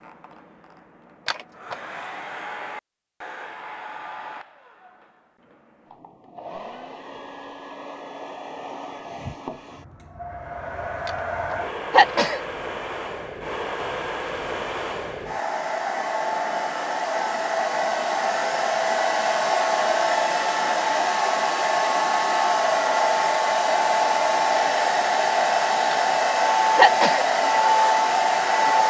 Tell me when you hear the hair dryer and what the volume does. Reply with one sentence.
The hair dryer can be heard from 0.0 to 28.8 s, getting louder.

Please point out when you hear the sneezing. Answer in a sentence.
You can hear the sneezing from 1.2 to 1.8 s, from 11.9 to 12.4 s and from 26.8 to 27.2 s.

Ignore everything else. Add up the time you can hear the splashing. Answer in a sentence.
You can't hear the splashing here.